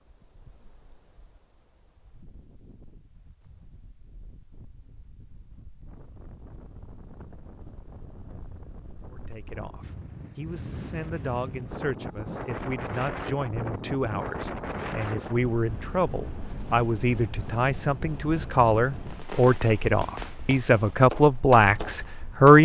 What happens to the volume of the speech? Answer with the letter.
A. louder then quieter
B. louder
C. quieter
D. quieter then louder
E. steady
B.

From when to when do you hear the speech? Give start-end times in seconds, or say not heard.
9.1-22.6.